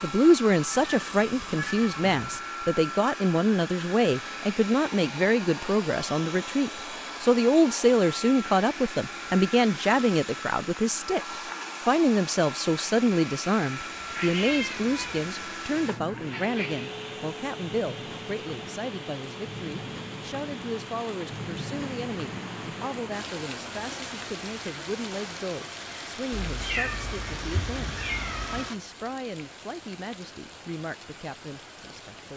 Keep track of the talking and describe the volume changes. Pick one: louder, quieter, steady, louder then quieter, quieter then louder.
quieter.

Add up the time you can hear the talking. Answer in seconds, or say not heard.
32 s.